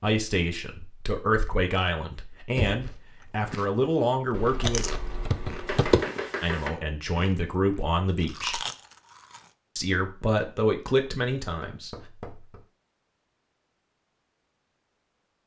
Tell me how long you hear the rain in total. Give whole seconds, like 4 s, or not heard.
not heard.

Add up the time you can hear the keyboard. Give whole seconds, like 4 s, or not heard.
2 s.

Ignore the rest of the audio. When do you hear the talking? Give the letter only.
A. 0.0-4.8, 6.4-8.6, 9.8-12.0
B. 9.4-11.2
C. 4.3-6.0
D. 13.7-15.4
A.